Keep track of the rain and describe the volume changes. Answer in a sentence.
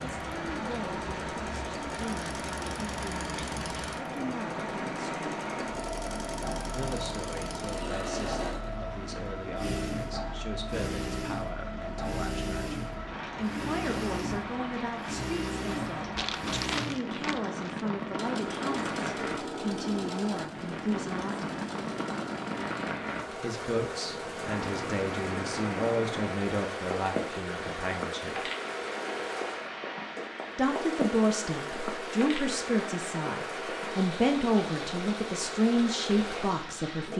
The loudness of the rain stays about the same.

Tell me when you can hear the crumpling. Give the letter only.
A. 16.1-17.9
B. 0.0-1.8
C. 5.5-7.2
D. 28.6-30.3
A.